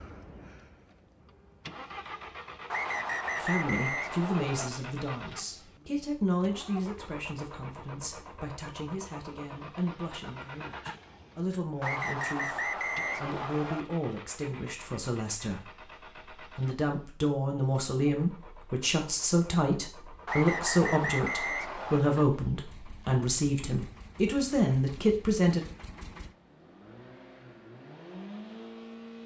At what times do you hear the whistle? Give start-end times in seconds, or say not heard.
2.7-4.7, 11.8-13.8, 20.2-22.1.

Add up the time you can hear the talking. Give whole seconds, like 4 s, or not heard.
22 s.